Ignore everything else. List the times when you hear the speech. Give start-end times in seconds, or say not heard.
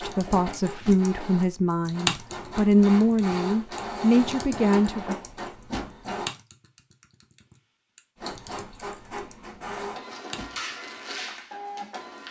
0.0-5.2.